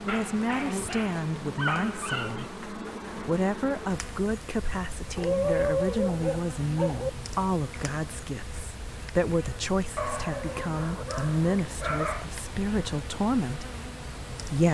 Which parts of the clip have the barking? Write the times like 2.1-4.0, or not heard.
0.1-2.5, 5.2-7.1, 9.9-12.2.